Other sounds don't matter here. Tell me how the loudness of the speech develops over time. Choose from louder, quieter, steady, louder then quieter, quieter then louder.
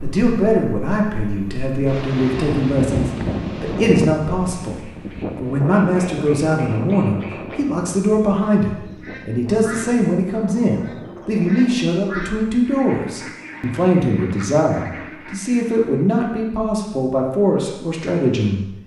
steady.